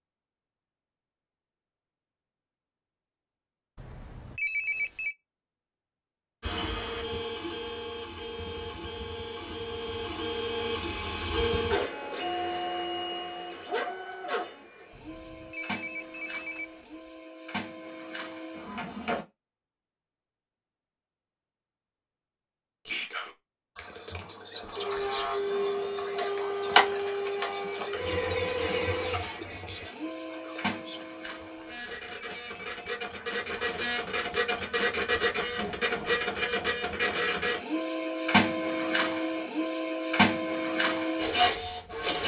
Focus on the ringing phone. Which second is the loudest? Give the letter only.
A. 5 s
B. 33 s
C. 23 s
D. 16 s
A.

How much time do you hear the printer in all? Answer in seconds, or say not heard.
30 s.